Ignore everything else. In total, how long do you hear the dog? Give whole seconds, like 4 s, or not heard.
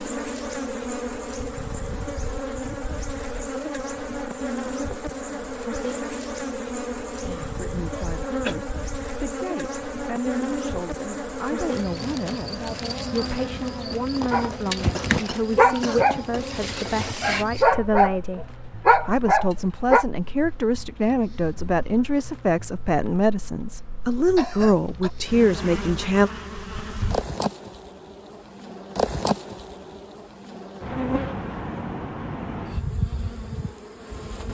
5 s.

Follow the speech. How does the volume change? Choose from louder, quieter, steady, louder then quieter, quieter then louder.
louder.